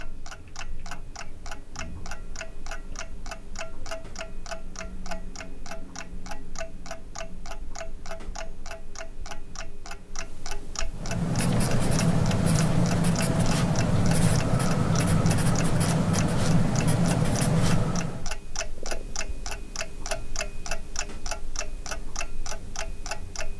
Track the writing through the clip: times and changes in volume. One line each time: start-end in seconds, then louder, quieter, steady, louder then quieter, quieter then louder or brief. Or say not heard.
10.9-18.3 steady.